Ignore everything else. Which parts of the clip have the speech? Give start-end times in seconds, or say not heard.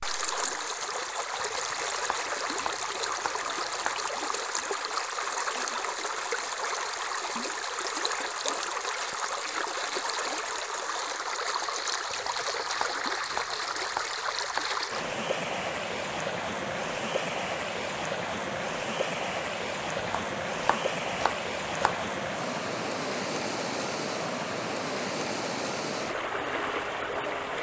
not heard.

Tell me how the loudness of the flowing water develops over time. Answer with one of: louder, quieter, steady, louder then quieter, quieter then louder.
steady.